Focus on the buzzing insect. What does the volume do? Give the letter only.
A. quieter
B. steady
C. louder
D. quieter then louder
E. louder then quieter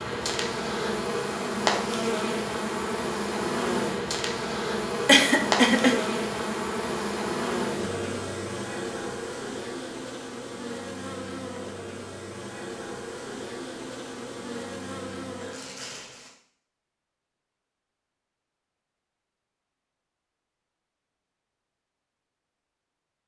A.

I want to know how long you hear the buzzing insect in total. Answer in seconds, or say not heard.
16 s.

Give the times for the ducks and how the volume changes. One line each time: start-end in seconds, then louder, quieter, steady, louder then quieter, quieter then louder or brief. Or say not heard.
not heard.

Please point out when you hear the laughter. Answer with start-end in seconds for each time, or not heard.
5.0-6.0.